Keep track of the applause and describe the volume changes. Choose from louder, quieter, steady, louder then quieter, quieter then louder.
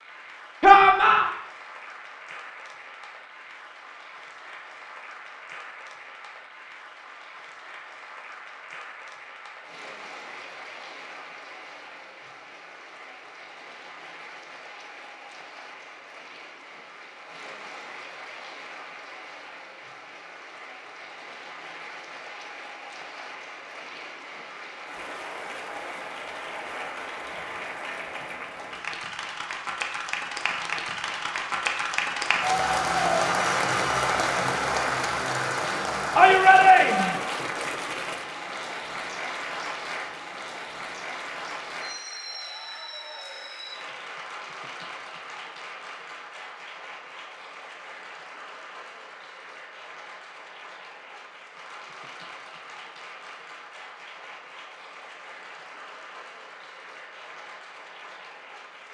louder then quieter.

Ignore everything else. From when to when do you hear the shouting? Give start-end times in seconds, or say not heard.
0.6-1.2, 36.1-37.1.